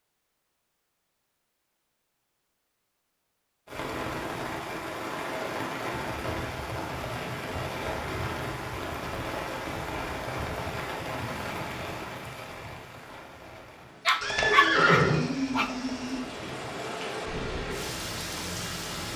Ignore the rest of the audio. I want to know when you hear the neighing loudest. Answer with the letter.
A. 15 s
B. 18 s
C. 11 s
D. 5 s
A.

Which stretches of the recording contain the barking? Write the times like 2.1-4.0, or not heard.
14.1-15.7.